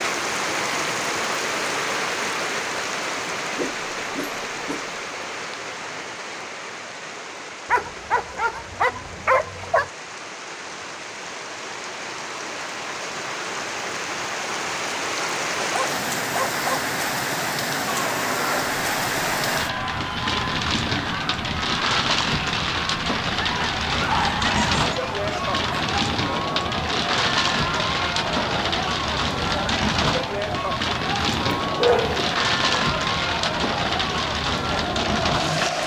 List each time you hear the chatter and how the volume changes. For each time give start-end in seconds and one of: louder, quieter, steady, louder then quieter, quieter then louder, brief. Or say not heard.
17.9-35.8 steady.